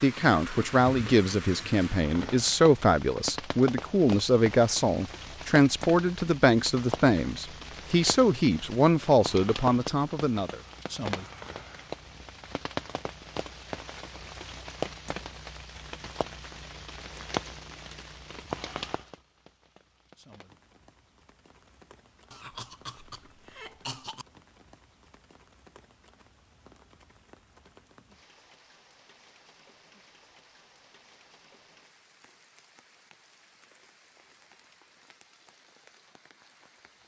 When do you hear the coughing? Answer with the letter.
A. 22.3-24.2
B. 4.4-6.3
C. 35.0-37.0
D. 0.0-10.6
A.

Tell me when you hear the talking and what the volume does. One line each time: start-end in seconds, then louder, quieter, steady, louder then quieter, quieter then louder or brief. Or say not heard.
0.0-10.6 steady.